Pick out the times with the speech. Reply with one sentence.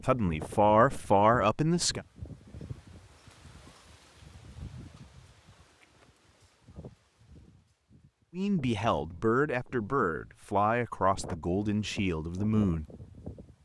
You can hear the speech from 0.0 to 2.0 s and from 8.3 to 12.8 s.